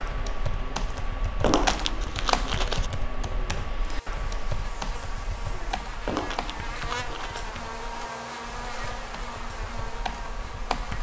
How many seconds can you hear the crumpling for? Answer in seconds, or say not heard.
3 s.